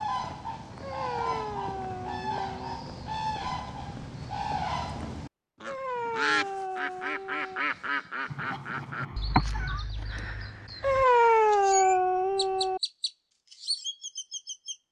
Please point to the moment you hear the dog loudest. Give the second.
11 s.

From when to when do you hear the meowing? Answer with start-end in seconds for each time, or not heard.
8.2-9.8.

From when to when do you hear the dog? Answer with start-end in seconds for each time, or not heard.
0.8-2.8, 5.7-7.6, 10.8-12.8.